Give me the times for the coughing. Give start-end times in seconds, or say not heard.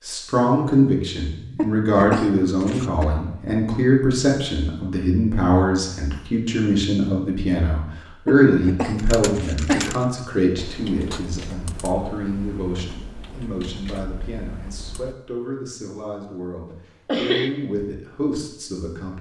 1.6-3.0, 8.2-9.9, 17.1-17.5.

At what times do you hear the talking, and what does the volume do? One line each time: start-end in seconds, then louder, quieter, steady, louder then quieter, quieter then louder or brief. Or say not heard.
0.1-19.1 quieter.